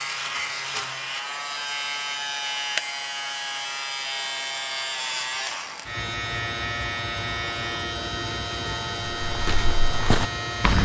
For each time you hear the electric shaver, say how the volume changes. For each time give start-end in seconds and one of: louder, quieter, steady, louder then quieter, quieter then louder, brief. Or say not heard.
0.0-10.8 steady.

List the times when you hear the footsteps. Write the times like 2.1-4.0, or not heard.
9.2-10.8.